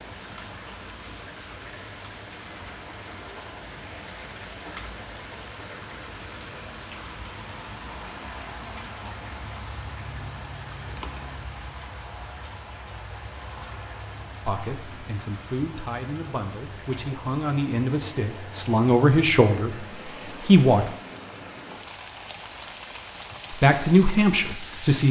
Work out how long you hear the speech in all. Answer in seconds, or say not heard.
8 s.